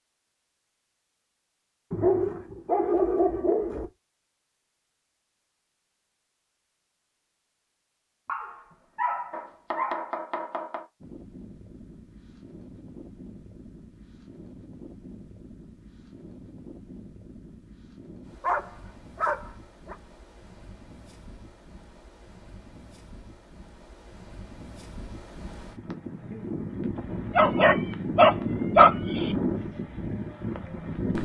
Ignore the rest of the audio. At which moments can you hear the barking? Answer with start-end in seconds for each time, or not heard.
1.9-3.9, 8.2-10.1, 18.4-19.9, 27.4-29.4.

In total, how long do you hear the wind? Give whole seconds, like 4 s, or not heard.
20 s.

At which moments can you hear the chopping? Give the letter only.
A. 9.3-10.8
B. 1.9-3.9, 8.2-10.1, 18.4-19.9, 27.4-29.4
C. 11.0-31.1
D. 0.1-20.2
A.